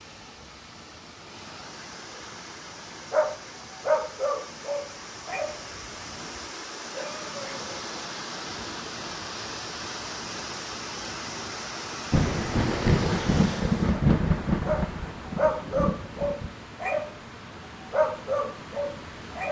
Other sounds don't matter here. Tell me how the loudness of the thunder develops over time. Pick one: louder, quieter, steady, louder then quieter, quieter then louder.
quieter.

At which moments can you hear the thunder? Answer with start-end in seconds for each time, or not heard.
12.1-16.5.